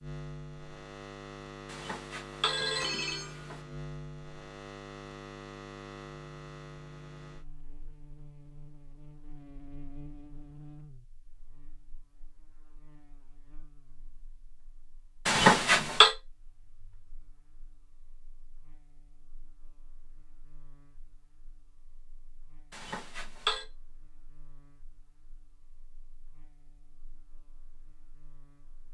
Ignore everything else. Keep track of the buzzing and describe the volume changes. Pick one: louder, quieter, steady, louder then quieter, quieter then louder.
quieter.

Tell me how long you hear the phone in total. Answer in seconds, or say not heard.
4 s.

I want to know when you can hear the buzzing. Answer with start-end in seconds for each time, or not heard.
0.0-28.8.